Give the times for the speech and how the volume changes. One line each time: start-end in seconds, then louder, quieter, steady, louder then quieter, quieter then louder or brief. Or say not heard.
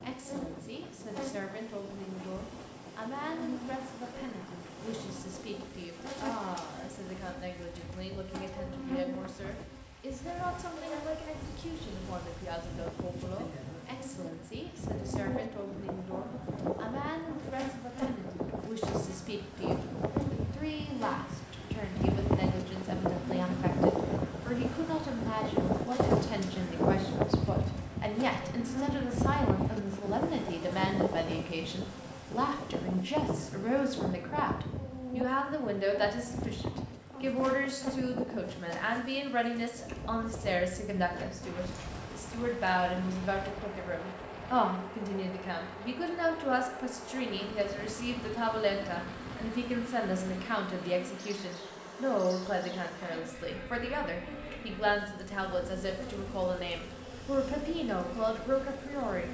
0.0-59.2 louder.